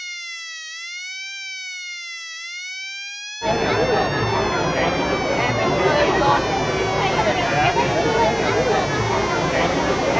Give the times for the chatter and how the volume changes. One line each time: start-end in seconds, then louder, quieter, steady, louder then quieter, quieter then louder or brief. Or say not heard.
3.4-10.1 steady.